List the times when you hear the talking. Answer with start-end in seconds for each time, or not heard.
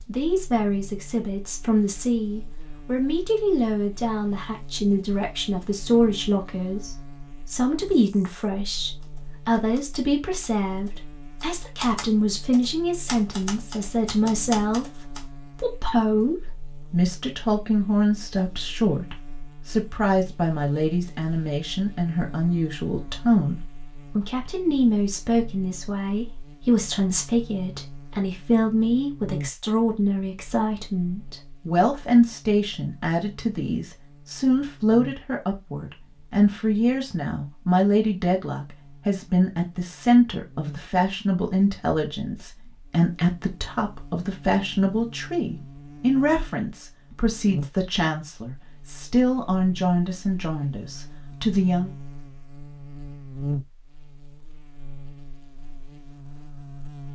0.1-51.9.